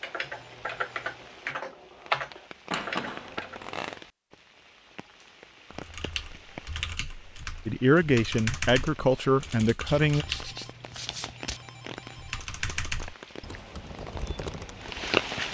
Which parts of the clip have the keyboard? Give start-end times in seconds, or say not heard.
0.0-3.6, 5.7-10.6, 12.2-15.1.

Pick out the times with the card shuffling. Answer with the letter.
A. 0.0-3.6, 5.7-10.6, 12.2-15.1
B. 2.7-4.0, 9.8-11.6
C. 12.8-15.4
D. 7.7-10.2
B.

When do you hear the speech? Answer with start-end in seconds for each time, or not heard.
7.7-10.2.